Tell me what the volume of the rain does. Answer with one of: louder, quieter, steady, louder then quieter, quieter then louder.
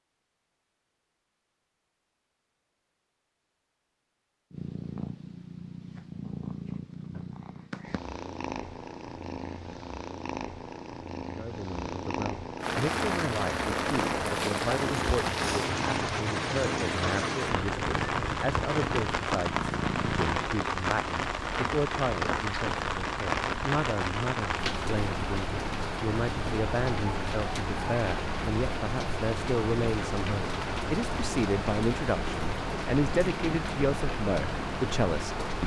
steady.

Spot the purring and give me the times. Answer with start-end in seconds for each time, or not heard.
4.5-20.4.